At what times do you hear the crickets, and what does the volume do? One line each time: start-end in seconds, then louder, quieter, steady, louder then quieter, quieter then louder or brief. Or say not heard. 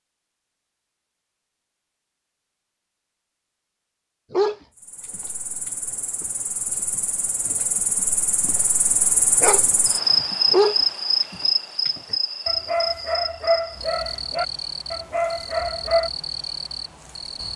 4.8-17.5 louder then quieter.